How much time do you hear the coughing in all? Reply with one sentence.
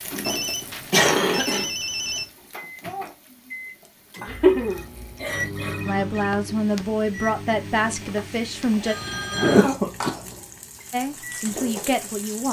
The coughing can be heard for 4 seconds in total.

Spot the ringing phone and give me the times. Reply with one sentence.
The ringing phone can be heard from 0.2 to 2.2 s, from 4.2 to 6.1 s and from 8.8 to 9.7 s.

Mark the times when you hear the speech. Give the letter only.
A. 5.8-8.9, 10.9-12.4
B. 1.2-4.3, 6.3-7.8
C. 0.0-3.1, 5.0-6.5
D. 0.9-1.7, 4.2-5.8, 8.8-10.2
A.